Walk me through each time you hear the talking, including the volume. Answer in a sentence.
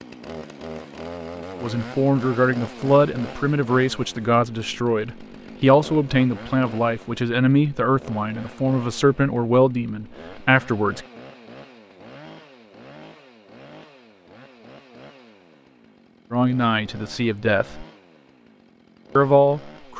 The talking can be heard from 1.6 to 11.0 s, at a steady volume; briefly from 16.3 to 17.9 s; and briefly from 19.1 to 19.9 s.